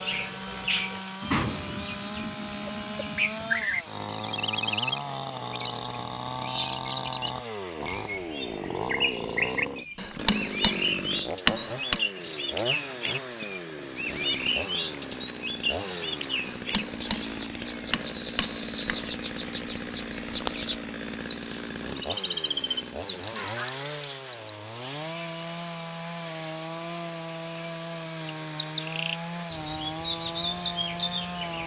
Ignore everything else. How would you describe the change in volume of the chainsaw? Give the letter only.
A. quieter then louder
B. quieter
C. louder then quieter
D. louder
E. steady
E.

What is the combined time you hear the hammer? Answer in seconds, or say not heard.
5 s.